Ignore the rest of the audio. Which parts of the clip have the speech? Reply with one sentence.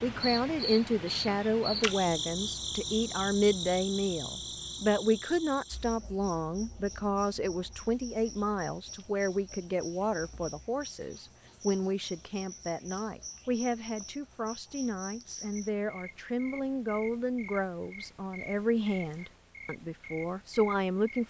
You can hear the speech from 0.0 to 21.2 s.